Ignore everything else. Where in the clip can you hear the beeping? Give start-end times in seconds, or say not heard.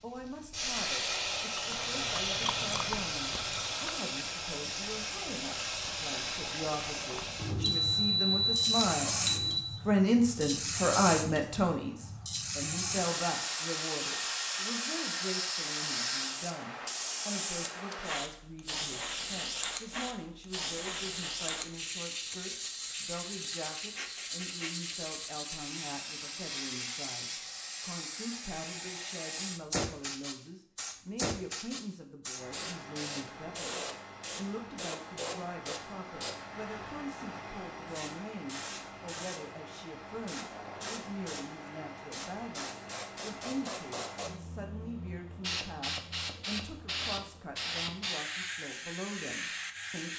7.6-9.6.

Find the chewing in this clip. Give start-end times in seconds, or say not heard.
1.6-4.0.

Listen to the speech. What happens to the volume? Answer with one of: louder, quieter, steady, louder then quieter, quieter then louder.
quieter.